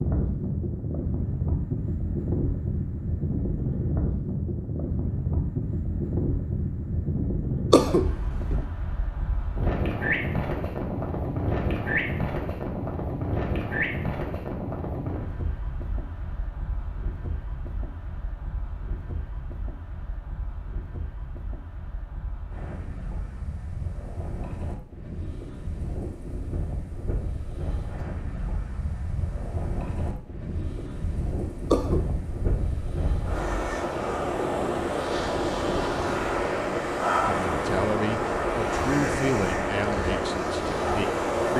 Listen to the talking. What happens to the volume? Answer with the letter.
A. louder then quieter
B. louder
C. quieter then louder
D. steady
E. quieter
E.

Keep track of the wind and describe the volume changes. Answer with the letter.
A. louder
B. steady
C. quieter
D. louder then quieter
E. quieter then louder
E.